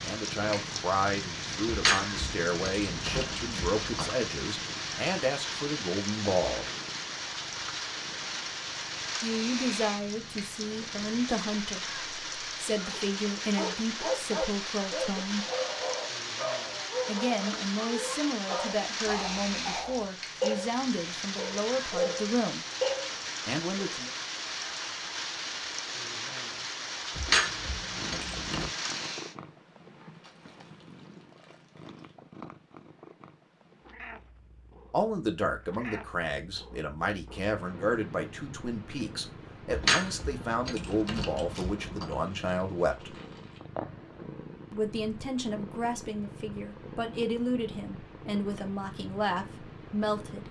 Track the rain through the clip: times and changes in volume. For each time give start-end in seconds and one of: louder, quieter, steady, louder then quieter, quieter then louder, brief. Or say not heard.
0.0-29.4 steady.